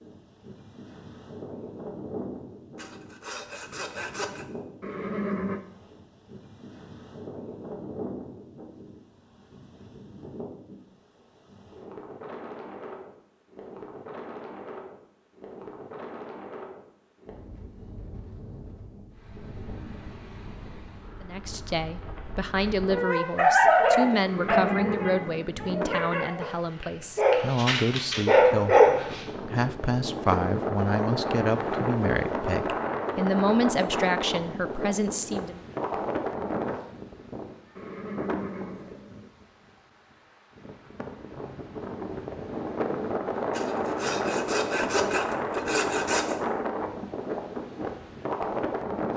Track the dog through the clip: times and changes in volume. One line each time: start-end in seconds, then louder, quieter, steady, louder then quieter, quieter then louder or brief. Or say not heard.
22.9-29.2 quieter then louder.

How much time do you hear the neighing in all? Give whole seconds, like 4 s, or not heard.
4 s.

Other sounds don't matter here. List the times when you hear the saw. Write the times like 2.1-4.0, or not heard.
2.8-4.5, 43.5-46.4.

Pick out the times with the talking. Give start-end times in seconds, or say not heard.
21.2-35.6.